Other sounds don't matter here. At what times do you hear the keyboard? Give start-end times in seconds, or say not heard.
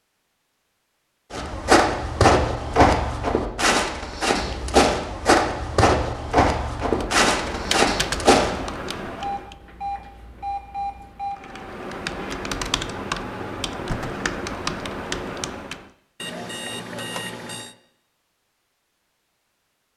6.8-9.6, 11.3-15.9.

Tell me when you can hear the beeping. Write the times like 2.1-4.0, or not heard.
4.4-4.9, 9.2-11.4, 16.2-17.8.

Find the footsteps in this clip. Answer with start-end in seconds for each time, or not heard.
1.3-8.7.